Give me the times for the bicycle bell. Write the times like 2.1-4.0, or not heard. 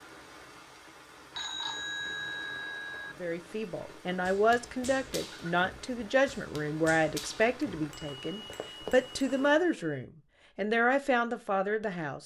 1.3-3.1, 7.6-10.1.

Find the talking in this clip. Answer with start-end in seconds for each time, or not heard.
3.2-12.2.